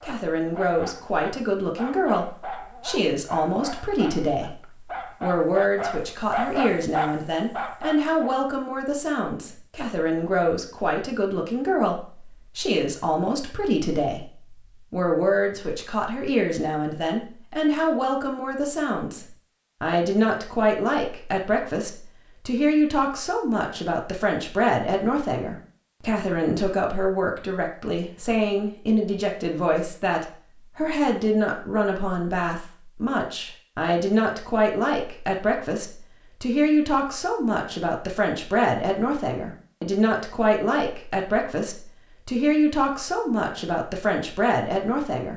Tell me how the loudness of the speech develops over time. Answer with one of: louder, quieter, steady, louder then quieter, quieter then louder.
steady.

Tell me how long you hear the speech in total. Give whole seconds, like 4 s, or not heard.
44 s.